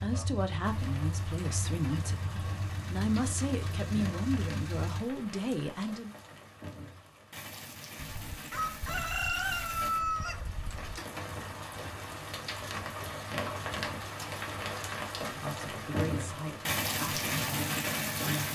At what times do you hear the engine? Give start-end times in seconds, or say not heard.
0.0-5.0.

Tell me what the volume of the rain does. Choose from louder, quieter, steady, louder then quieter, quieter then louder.
louder.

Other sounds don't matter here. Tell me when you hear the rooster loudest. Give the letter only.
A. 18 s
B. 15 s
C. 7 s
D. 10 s
D.